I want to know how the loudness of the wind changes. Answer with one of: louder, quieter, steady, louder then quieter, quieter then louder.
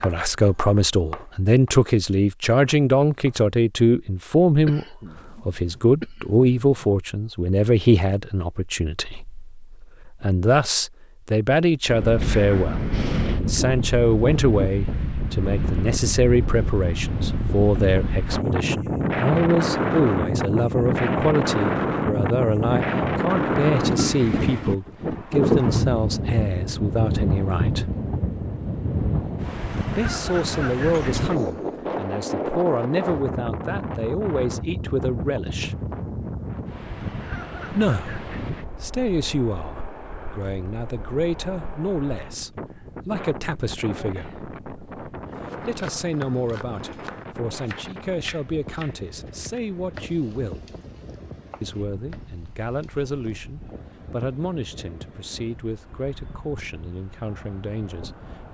quieter.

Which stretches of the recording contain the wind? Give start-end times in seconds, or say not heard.
11.8-58.5.